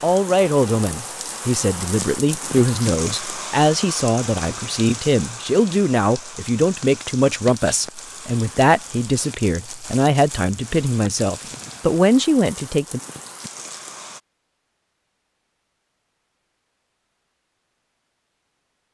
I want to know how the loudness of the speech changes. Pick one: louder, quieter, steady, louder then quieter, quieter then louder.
steady.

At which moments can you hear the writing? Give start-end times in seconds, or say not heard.
not heard.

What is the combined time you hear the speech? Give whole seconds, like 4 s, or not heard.
13 s.